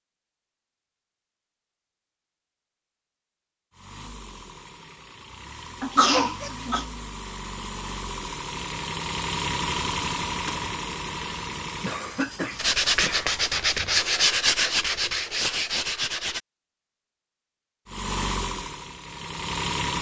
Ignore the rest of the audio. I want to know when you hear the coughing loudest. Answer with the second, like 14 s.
6 s.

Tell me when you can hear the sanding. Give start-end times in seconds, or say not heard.
12.6-16.4.